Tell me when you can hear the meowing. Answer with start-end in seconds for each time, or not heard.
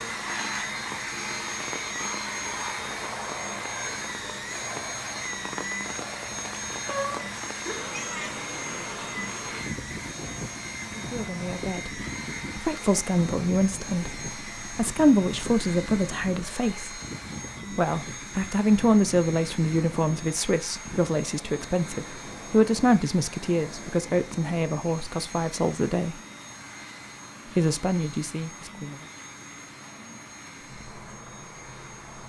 6.8-8.3.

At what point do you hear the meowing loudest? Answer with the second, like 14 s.
7 s.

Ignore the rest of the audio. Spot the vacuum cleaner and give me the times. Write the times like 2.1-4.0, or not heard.
0.0-32.2.